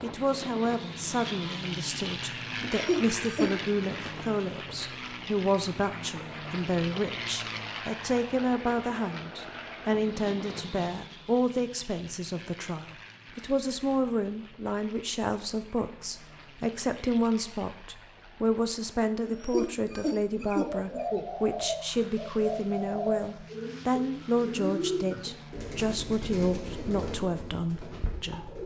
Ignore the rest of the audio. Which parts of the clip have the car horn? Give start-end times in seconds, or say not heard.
not heard.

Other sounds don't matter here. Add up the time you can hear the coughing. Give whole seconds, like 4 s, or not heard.
3 s.